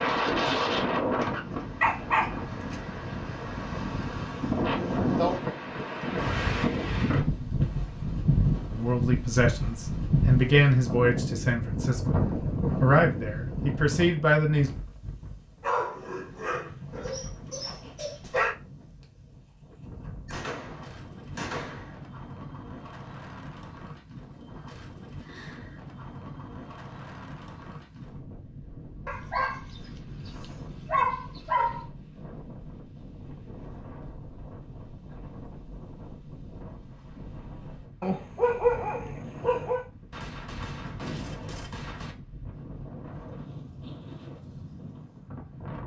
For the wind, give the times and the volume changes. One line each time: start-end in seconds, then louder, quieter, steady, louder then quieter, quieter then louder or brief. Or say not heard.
0.0-45.8 quieter.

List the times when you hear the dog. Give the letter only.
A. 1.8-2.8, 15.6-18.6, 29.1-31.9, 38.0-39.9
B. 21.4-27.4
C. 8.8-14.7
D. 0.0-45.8
A.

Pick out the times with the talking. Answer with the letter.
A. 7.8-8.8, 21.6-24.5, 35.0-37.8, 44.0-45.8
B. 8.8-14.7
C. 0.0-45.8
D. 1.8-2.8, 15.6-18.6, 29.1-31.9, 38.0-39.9
B.